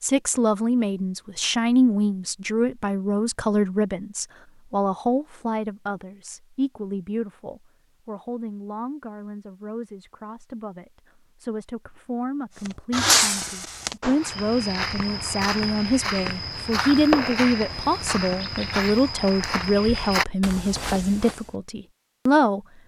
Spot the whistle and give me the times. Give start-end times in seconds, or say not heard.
not heard.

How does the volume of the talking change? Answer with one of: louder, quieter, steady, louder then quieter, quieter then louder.
quieter then louder.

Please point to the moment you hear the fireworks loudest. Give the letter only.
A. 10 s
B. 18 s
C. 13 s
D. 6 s
C.